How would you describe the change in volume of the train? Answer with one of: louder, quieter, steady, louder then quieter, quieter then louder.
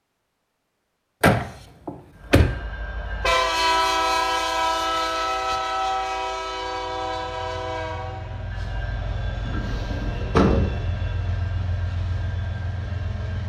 quieter.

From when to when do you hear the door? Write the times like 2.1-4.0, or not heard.
1.2-2.5, 9.4-10.8.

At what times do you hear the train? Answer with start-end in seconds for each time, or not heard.
2.1-13.4.